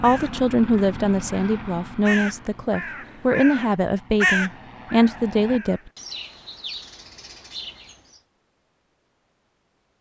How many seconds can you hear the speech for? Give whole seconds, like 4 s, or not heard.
6 s.